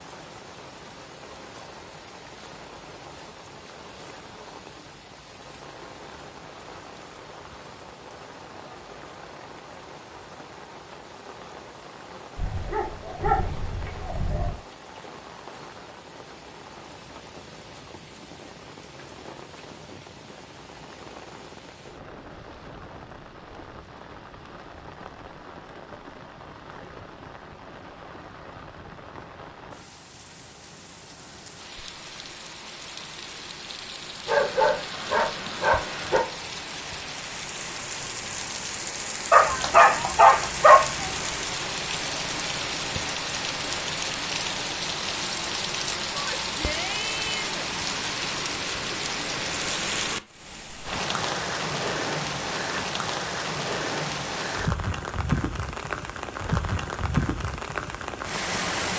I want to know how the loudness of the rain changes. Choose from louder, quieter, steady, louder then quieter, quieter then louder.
louder.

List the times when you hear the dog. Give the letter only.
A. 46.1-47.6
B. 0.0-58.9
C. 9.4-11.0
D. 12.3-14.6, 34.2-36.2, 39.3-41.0
D.